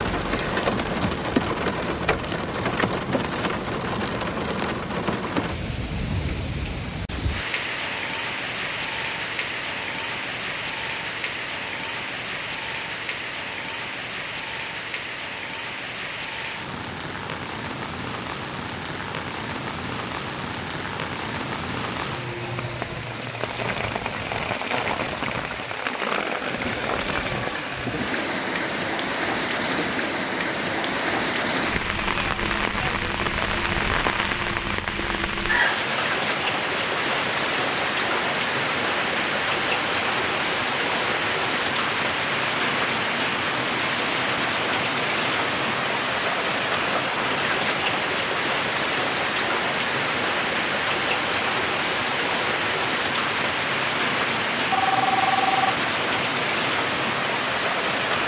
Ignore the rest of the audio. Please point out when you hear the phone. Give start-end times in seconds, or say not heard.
54.7-55.8.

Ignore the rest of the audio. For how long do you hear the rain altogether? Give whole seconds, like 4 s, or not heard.
58 s.